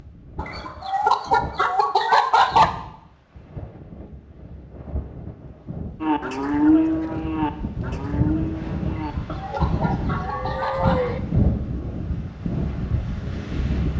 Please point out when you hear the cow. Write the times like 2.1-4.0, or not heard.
6.0-11.2.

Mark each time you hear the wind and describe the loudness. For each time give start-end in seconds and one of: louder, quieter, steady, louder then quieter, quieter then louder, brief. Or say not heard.
0.0-13.9 louder.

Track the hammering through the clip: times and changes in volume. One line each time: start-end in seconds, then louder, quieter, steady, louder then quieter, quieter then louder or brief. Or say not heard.
not heard.